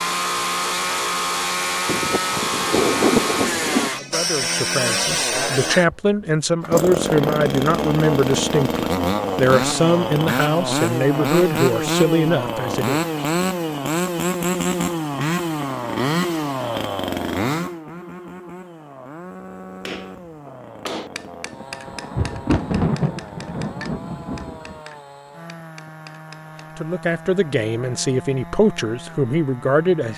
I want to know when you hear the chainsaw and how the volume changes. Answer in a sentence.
The chainsaw can be heard from 0.0 to 30.1 s, getting quieter.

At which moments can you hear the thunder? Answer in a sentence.
You can hear the thunder from 1.9 to 3.9 s and from 21.6 to 24.8 s.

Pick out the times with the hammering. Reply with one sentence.
You can hear the hammering from 19.9 to 26.8 s.